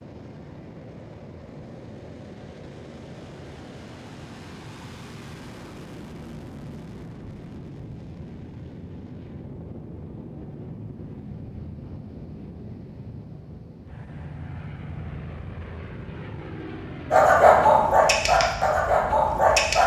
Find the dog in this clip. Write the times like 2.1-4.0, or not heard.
17.1-19.8.